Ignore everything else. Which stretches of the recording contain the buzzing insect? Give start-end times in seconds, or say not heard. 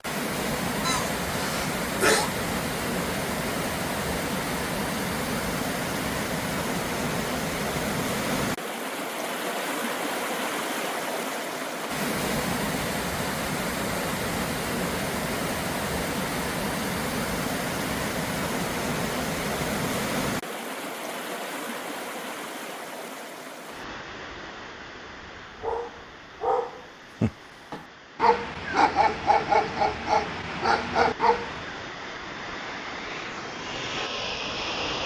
not heard.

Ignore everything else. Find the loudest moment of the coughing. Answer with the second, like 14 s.
2 s.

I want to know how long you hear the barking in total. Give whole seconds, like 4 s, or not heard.
6 s.